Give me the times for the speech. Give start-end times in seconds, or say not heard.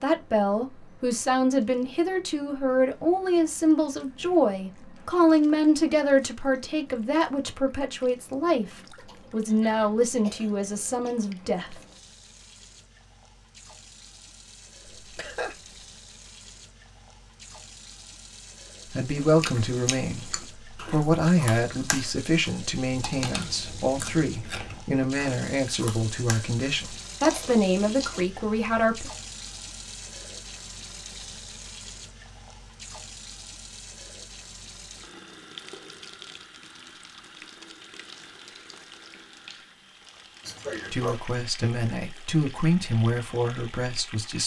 0.0-8.7, 9.3-11.8, 18.9-29.1, 40.9-44.4.